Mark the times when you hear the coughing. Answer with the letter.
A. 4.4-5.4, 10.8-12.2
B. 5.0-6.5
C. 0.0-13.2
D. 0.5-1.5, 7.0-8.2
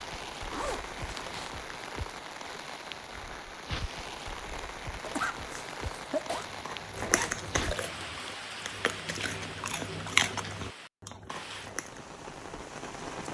B.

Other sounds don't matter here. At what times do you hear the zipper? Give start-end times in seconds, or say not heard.
0.5-1.5, 7.0-8.2.